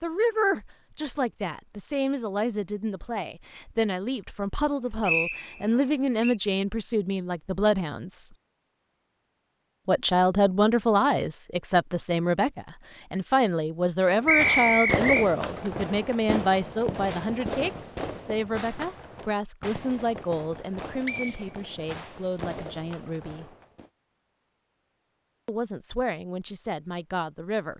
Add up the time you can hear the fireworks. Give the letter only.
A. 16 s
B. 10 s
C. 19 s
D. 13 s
B.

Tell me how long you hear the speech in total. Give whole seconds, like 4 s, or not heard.
24 s.